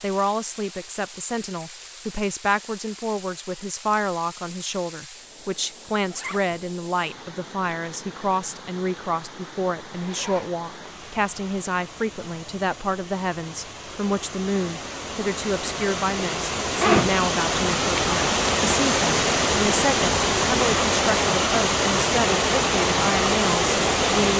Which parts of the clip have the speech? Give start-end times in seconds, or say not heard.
0.0-24.3.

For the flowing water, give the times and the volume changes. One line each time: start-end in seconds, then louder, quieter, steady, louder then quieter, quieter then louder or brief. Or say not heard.
0.0-24.3 louder.